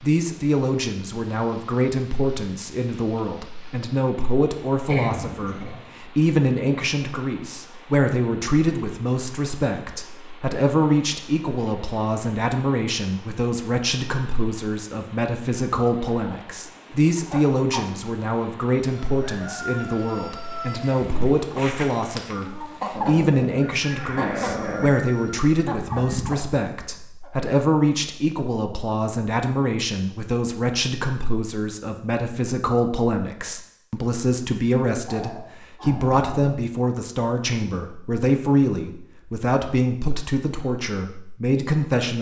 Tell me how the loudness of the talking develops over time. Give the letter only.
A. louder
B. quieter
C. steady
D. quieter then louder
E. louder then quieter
C.